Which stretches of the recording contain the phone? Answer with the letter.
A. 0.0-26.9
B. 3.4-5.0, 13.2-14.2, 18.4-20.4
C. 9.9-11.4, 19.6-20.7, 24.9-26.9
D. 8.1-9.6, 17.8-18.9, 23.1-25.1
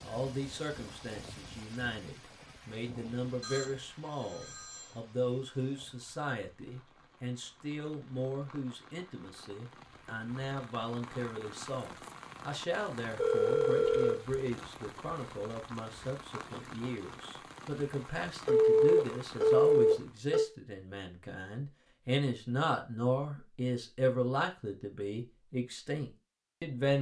B.